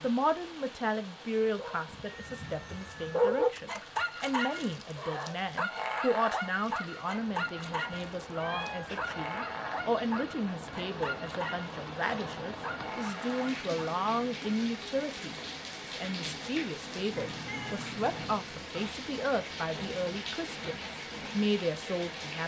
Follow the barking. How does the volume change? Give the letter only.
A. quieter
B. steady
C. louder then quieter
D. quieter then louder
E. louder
A.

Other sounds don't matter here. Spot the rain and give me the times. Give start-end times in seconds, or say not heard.
0.0-22.4.